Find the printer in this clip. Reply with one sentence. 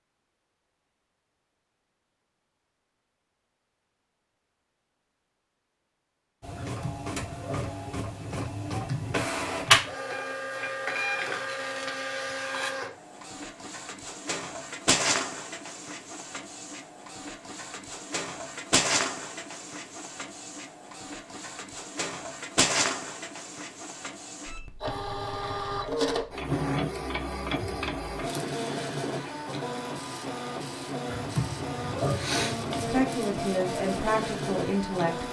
The printer can be heard from 6.4 to 35.2 s.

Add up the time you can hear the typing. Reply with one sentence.
The typing can be heard for 5 seconds in total.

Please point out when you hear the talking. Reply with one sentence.
You can hear the talking from 32.8 to 35.2 s.